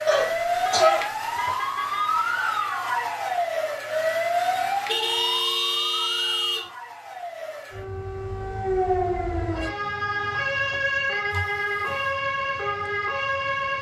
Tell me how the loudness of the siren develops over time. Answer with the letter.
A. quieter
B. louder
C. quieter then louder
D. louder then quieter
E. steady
C.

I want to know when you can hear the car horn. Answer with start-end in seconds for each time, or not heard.
0.3-2.1, 4.8-6.7, 11.3-12.1.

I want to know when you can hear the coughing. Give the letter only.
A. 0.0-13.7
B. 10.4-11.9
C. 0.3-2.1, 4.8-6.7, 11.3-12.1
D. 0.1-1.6
D.